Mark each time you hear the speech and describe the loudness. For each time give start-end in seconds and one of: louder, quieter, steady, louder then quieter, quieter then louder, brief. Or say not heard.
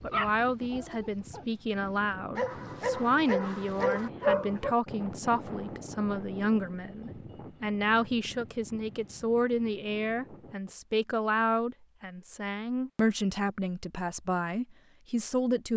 0.0-15.7 steady.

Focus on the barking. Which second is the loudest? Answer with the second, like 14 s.
4 s.